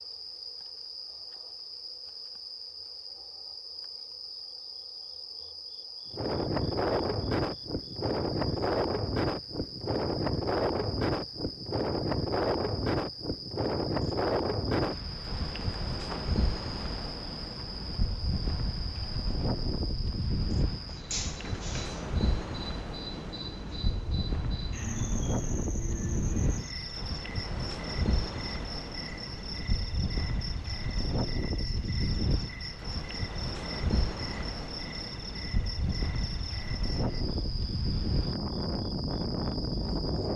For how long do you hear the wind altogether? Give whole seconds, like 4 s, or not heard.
34 s.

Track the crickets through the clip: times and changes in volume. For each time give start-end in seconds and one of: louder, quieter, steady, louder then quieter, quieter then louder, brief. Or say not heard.
0.0-40.3 steady.